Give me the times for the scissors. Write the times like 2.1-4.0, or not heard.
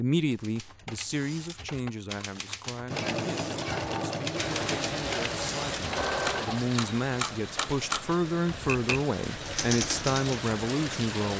not heard.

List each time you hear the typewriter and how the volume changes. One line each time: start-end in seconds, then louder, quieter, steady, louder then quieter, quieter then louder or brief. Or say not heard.
0.3-10.4 louder.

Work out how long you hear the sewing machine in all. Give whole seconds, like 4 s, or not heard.
4 s.